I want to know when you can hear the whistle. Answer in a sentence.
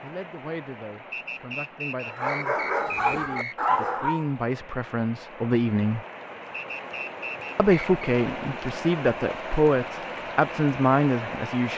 The whistle can be heard from 1.1 to 3.5 s and from 6.5 to 7.9 s.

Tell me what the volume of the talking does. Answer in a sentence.
The volume of the talking goes up.